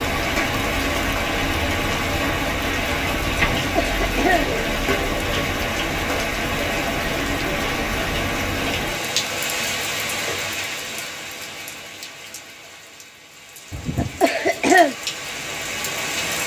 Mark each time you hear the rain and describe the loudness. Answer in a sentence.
You can hear the rain from 0.0 to 16.4 s, getting quieter.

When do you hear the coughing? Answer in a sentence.
You can hear the coughing from 3.3 to 4.5 s and from 13.7 to 14.9 s.